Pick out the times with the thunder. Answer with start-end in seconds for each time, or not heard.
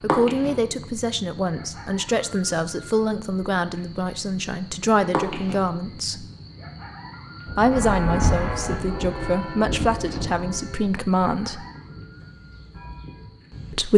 7.5-10.6.